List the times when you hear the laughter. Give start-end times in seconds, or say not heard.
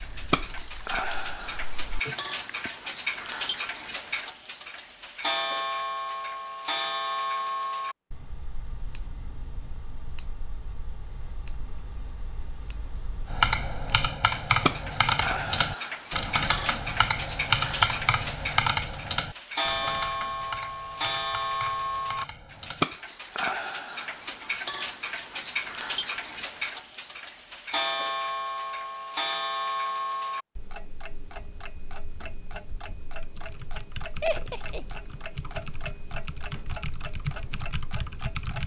34.2-34.9.